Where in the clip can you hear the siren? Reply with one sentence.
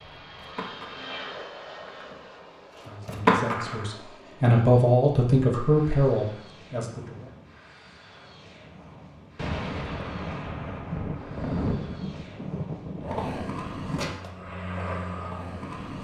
You can't hear the siren here.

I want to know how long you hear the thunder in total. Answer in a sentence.
You can hear the thunder for 4 seconds altogether.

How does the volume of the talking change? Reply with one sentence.
The volume of the talking goes up, then down.